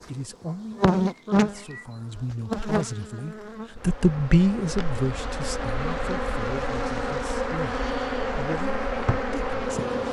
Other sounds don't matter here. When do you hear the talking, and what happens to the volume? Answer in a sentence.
The talking can be heard from 0.1 to 9.9 s, getting louder then quieter.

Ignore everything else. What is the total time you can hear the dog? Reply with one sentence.
You can't hear the dog here.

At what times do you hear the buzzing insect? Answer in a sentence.
You can hear the buzzing insect from 0.0 to 10.0 s.